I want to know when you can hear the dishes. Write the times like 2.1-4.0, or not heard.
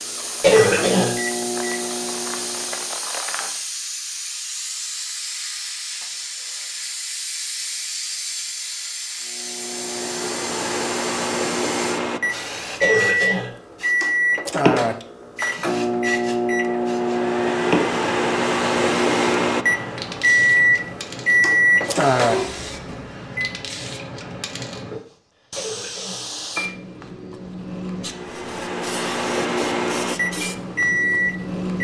not heard.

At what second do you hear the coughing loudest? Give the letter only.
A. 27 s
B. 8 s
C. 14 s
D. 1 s
D.